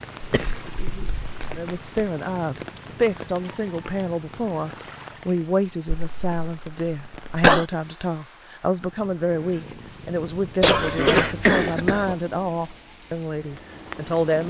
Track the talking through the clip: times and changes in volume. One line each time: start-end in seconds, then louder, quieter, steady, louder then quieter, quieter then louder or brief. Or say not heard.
1.5-14.4 steady.